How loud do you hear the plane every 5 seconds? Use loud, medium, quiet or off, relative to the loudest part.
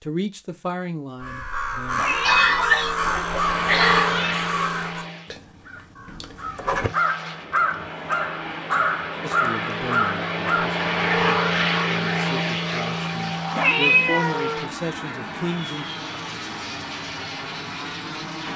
loud, medium, loud, medium.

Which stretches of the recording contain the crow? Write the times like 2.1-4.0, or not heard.
1.2-10.7.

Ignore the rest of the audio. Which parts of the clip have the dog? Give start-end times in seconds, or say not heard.
not heard.